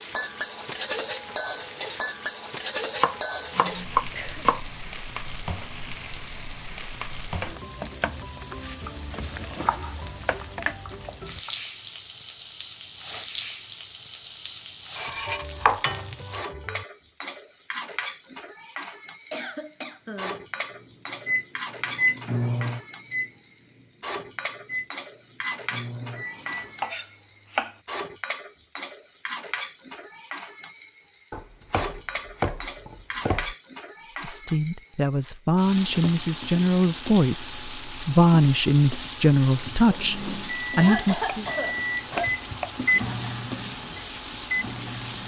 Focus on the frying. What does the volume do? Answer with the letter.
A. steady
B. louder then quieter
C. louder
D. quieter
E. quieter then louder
A.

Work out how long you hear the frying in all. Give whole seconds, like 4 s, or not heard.
45 s.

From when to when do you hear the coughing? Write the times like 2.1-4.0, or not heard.
3.6-4.5, 19.3-20.4, 39.5-42.3.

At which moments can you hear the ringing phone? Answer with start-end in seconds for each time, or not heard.
not heard.